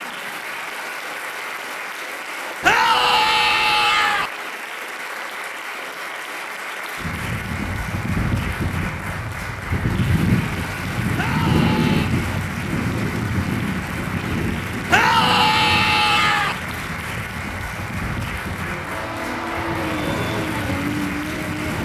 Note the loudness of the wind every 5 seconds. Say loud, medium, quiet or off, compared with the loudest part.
off, medium, loud, medium, medium.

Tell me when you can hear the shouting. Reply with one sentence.
You can hear the shouting from 2.6 to 4.3 s, from 11.2 to 12.1 s and from 14.8 to 16.6 s.